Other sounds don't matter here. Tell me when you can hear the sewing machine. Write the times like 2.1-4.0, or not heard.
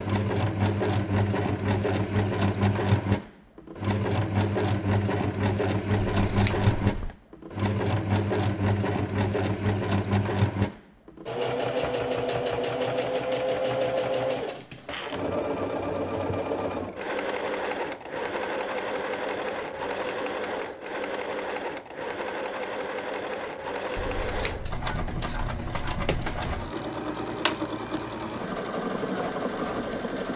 0.0-30.3.